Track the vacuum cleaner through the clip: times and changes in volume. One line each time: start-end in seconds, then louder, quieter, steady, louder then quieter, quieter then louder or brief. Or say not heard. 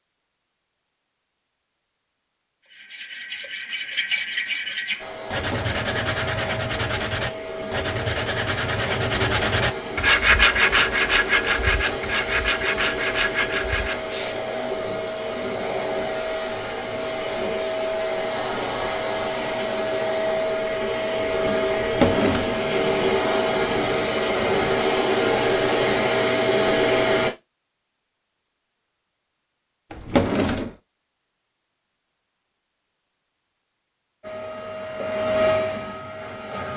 5.0-27.3 louder
34.2-36.7 brief.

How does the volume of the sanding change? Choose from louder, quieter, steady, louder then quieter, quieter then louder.
louder then quieter.